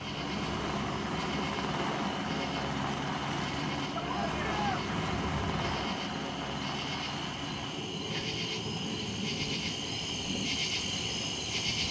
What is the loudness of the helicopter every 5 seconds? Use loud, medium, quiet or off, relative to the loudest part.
loud, loud, medium.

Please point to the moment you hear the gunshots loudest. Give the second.
5 s.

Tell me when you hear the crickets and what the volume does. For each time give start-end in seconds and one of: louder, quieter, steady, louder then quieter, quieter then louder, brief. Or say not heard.
0.0-11.8 louder.